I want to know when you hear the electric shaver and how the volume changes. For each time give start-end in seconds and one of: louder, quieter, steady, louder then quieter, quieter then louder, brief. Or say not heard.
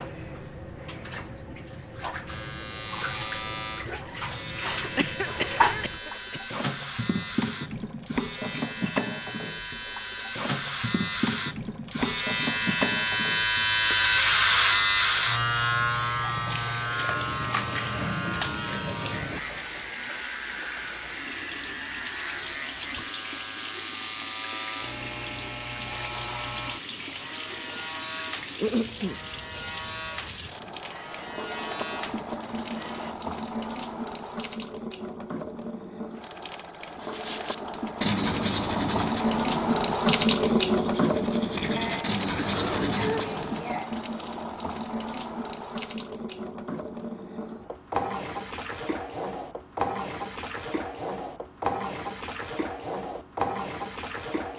2.2-33.1 louder then quieter.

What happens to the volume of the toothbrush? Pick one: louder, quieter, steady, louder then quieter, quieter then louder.
quieter then louder.